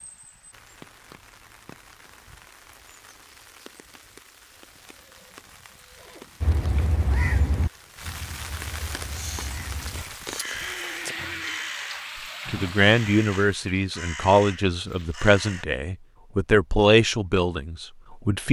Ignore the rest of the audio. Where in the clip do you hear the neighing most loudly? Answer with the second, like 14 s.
11 s.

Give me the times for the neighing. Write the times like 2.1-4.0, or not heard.
4.8-6.3, 10.6-11.8.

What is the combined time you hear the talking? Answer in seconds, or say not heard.
6 s.